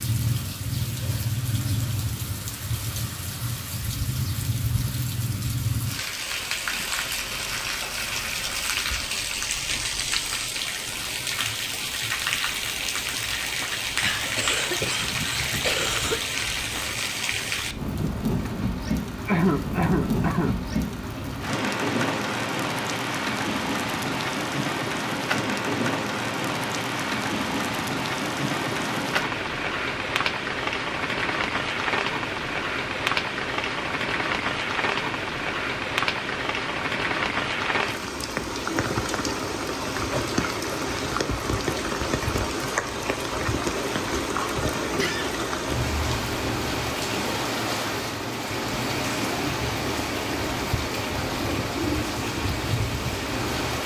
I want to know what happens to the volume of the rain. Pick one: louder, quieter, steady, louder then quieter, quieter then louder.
steady.